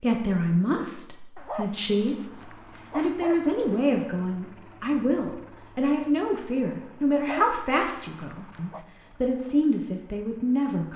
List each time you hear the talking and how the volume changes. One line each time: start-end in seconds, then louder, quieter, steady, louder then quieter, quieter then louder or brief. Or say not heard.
0.0-10.9 steady.